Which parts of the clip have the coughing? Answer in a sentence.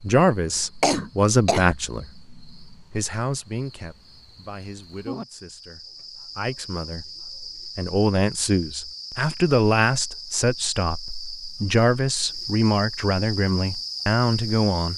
The coughing can be heard from 0.8 to 1.8 s.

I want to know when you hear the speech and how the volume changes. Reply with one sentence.
You can hear the speech from 0.0 to 14.9 s, getting quieter then louder.